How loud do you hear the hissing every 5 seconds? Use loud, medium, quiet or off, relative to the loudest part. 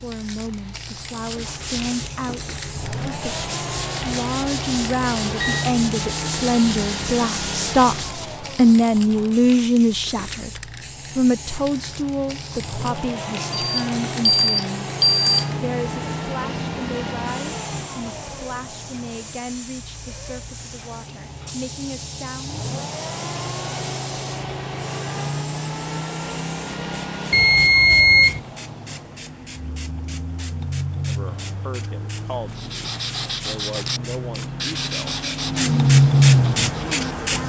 quiet, quiet, quiet, quiet, quiet, quiet, quiet, loud.